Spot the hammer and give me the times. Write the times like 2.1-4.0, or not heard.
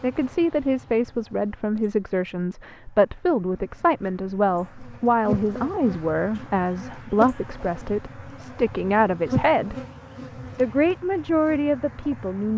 not heard.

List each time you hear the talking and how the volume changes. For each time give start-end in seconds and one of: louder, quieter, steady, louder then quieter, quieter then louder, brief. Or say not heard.
0.0-9.8 steady
10.6-12.5 brief.